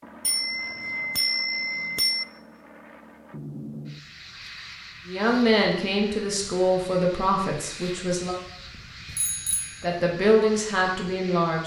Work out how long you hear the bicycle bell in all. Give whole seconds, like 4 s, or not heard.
3 s.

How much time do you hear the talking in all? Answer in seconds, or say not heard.
5 s.